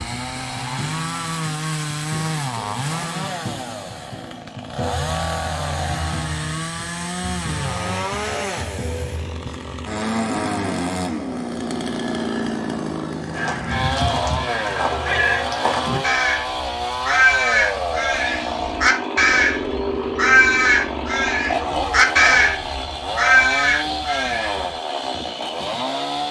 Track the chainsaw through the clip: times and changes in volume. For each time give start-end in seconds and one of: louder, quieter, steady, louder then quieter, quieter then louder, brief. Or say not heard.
0.0-26.2 steady.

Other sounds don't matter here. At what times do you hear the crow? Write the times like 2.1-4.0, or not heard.
13.3-24.8.